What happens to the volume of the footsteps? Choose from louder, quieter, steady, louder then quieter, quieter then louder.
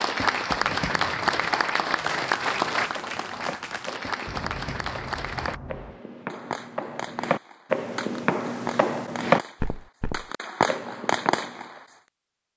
louder then quieter.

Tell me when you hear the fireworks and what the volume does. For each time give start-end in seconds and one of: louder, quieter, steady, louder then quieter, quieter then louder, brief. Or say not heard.
0.6-11.8 louder.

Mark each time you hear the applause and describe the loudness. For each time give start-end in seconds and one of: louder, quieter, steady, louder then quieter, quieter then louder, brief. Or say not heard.
0.0-5.6 quieter.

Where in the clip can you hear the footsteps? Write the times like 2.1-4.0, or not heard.
2.8-11.8.